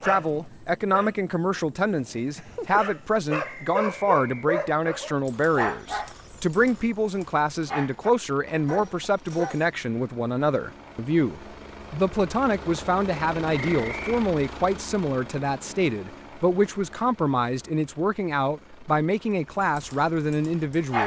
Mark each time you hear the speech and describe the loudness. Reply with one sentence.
The speech can be heard from 0.0 to 21.0 s, at a steady volume.